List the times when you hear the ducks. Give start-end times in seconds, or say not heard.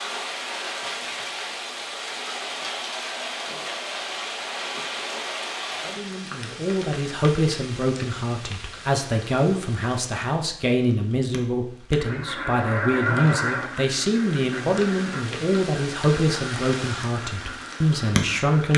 11.9-18.7.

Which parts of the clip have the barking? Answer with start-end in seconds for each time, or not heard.
not heard.